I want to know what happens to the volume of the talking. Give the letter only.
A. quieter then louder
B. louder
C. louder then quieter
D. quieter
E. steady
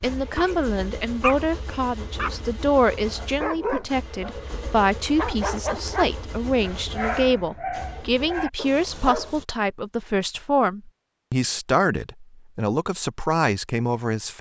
E.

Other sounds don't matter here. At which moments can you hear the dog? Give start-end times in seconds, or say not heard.
0.1-9.4.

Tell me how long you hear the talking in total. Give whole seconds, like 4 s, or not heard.
14 s.